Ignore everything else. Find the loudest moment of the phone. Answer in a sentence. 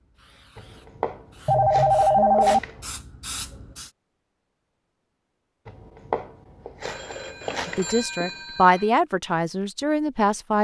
The volume of the phone peaks at 2 seconds.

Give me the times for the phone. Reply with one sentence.
You can hear the phone from 1.4 to 2.6 s and from 6.8 to 8.9 s.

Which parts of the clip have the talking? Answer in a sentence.
You can hear the talking from 7.7 to 10.5 s.